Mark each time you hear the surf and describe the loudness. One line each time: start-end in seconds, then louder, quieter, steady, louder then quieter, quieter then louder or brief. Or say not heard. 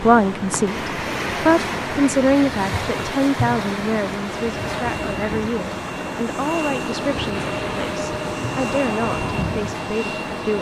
0.0-10.4 quieter.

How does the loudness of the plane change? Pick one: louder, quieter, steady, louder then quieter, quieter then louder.
louder.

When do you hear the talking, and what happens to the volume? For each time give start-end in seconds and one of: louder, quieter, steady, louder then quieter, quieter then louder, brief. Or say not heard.
0.0-10.5 quieter.